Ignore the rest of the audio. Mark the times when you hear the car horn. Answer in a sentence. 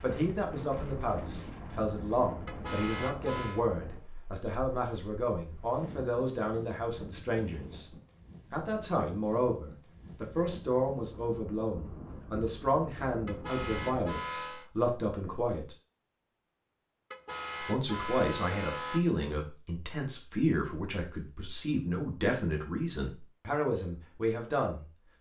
The car horn can be heard from 2.5 to 3.6 s, from 13.2 to 14.7 s and from 17.1 to 19.1 s.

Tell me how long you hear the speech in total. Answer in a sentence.
The speech can be heard for 22 seconds in total.